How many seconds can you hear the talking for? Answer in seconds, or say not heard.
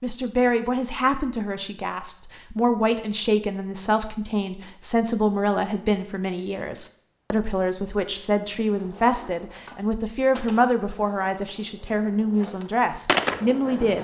14 s.